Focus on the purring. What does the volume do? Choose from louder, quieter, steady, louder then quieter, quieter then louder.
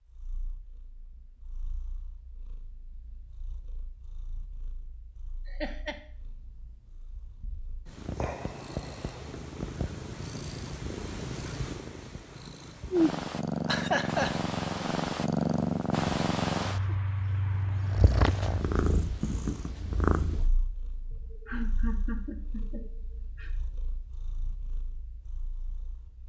louder then quieter.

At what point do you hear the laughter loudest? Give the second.
14 s.